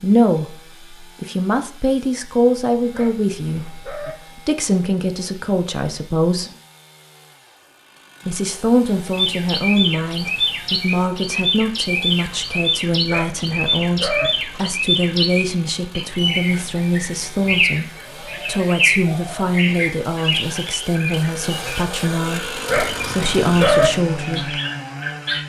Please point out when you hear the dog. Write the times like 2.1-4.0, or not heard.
2.9-4.2, 13.1-14.3, 22.6-23.9.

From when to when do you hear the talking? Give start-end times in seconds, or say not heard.
0.0-6.5, 8.2-24.6.